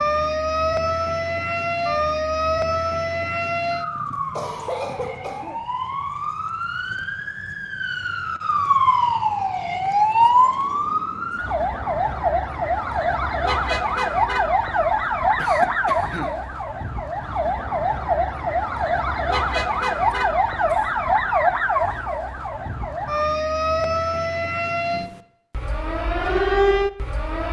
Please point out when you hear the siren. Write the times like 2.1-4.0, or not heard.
0.0-27.4.